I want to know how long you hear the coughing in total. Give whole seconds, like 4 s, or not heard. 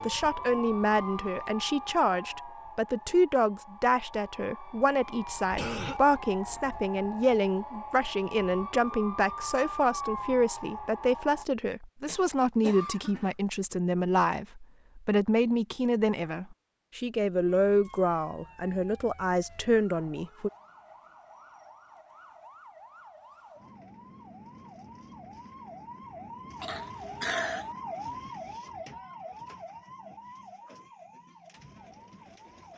3 s.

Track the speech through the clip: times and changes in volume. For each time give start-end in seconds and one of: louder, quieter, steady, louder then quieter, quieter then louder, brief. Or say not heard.
0.0-20.5 steady.